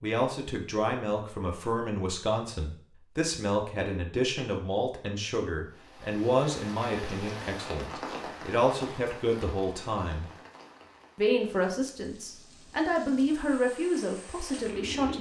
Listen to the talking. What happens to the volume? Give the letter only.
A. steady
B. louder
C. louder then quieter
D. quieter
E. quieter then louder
A.